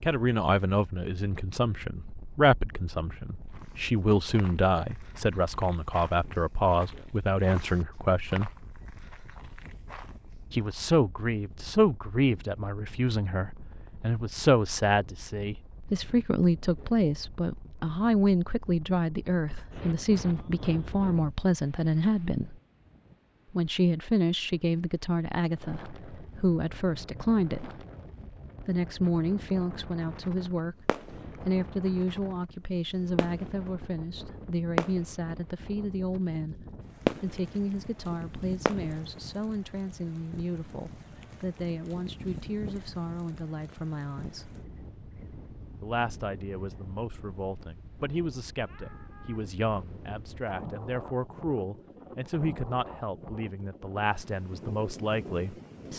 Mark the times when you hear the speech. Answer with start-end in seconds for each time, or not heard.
0.0-8.5, 10.5-22.6, 23.5-27.8, 28.6-44.5, 45.8-55.9.